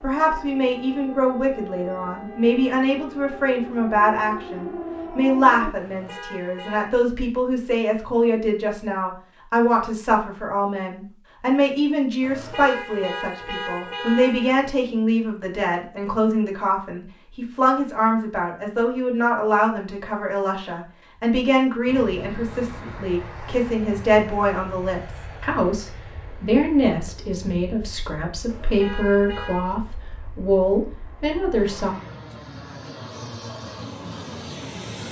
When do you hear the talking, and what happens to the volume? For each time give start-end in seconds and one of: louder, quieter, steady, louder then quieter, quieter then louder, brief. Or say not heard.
0.0-31.9 steady.